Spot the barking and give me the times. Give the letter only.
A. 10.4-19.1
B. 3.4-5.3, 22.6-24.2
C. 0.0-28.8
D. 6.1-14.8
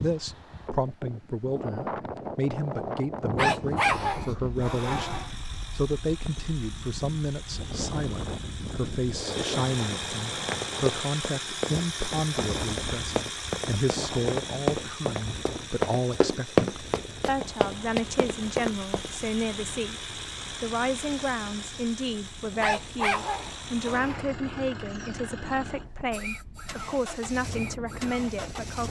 B.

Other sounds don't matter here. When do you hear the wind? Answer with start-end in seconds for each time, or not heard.
0.0-28.8.